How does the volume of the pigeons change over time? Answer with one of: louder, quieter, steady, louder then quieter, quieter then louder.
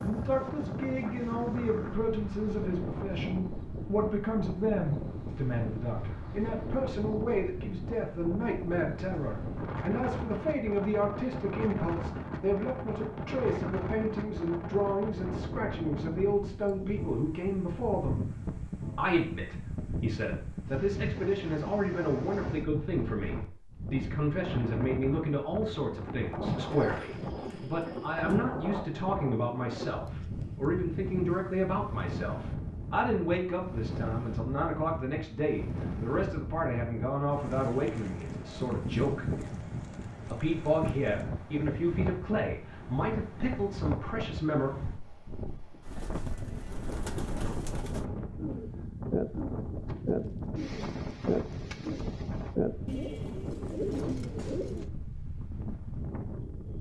louder then quieter.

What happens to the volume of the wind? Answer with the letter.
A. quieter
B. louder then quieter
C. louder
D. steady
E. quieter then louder
D.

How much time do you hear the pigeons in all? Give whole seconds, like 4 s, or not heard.
9 s.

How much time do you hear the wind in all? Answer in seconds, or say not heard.
57 s.